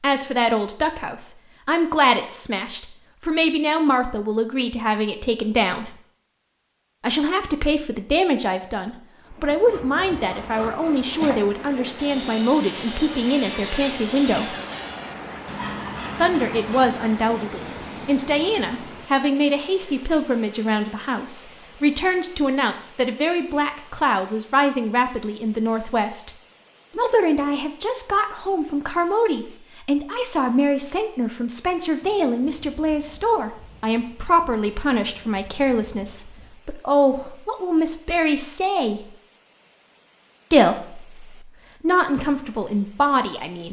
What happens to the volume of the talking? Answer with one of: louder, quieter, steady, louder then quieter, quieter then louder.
steady.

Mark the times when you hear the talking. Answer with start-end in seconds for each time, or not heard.
0.0-5.9, 7.0-14.6, 16.1-26.3, 26.9-39.1, 40.5-43.6.